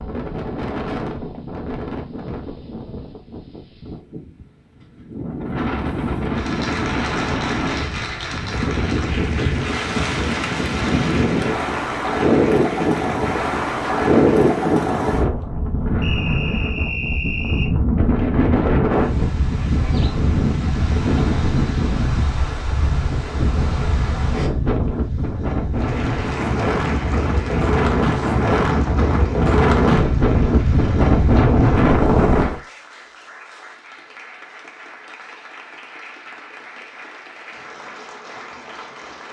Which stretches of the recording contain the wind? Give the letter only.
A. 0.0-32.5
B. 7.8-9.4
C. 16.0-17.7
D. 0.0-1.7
A.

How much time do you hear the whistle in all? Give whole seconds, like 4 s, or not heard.
2 s.